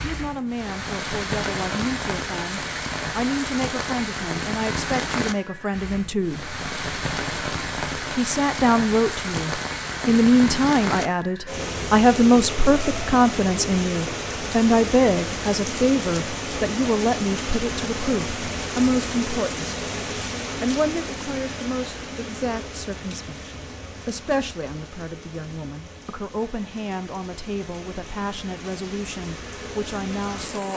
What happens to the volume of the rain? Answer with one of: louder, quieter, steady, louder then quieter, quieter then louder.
quieter.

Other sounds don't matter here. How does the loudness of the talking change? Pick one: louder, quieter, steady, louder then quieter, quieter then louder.
louder then quieter.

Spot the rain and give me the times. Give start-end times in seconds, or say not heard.
0.0-30.7.